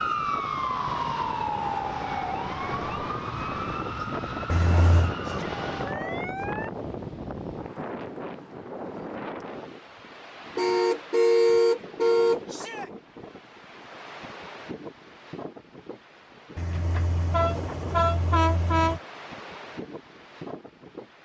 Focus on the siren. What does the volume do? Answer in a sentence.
The volume of the siren goes down.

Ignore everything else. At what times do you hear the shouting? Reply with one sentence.
The shouting can be heard from 5.2 to 6.5 s and from 12.4 to 12.9 s.